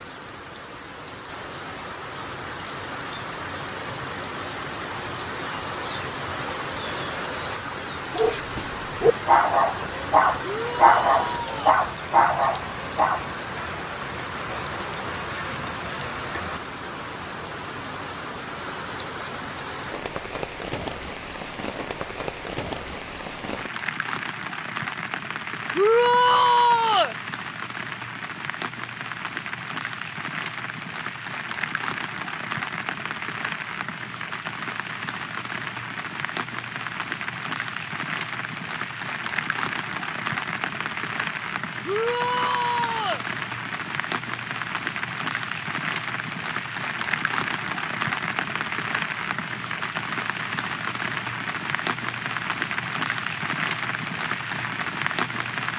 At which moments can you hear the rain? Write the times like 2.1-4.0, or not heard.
0.0-55.7.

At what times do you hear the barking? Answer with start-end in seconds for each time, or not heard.
8.1-13.2.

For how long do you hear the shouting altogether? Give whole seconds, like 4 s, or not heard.
4 s.